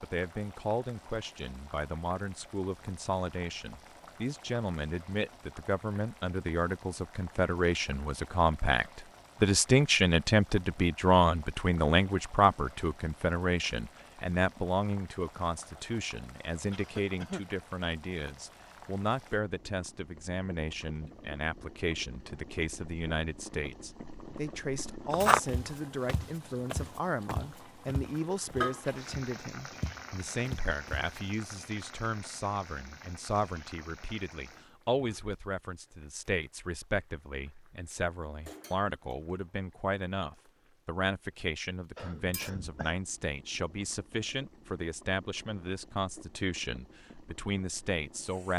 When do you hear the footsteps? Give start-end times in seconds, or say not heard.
25.1-31.2.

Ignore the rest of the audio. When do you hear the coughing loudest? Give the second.
17 s.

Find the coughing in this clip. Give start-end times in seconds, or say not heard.
16.7-17.4, 42.0-43.0.